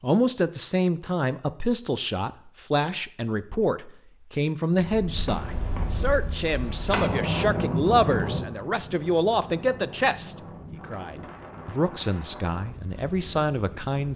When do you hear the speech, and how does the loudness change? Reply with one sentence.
The speech can be heard from 0.0 to 14.1 s, at a steady volume.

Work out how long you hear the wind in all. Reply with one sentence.
You can hear the wind for 9 seconds altogether.